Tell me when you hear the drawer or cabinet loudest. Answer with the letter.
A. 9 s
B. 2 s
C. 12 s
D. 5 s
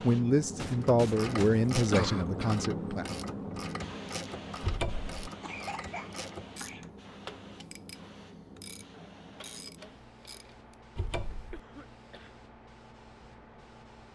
D.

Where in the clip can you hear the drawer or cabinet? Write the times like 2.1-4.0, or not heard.
4.6-5.2, 10.9-11.6.